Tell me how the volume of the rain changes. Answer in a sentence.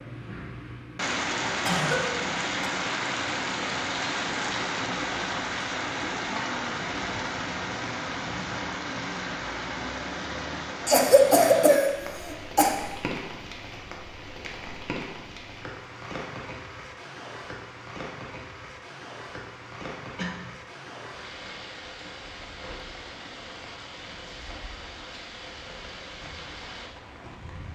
The loudness of the rain goes down.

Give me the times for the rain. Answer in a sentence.
The rain can be heard from 0.0 to 27.6 s.